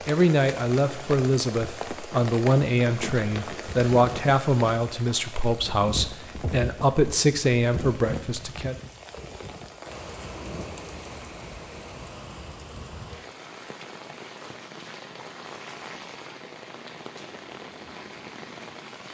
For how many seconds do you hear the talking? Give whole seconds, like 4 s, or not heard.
9 s.